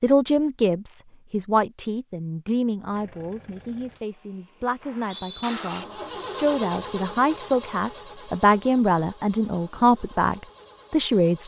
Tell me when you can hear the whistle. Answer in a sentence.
You can hear the whistle from 4.8 to 5.5 s.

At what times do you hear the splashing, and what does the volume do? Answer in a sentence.
You can't hear the splashing here.